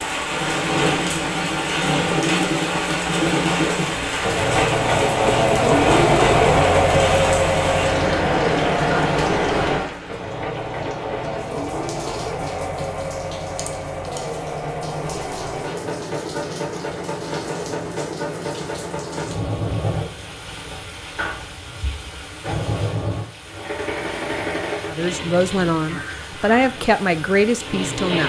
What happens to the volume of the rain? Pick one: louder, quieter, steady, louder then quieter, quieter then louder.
quieter.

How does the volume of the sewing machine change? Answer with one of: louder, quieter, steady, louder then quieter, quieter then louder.
quieter.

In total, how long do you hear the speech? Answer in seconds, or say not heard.
3 s.